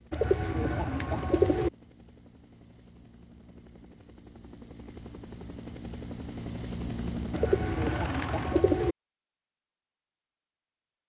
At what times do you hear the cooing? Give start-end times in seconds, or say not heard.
0.1-1.7, 7.3-8.9.